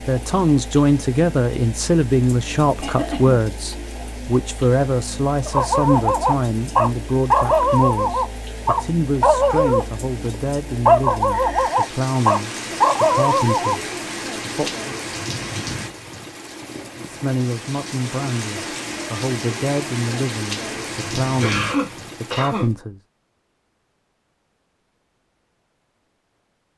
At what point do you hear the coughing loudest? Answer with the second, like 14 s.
22 s.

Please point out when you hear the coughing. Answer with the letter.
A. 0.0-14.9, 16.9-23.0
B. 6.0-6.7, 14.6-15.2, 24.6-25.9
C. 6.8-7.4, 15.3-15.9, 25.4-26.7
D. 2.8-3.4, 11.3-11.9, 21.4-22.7
D.